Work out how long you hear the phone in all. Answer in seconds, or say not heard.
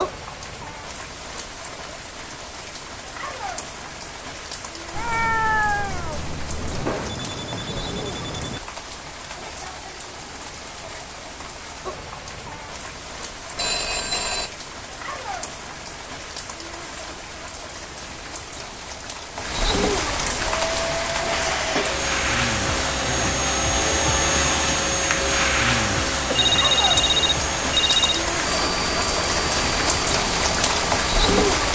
5 s.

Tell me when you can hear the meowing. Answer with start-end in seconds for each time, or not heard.
4.9-7.0.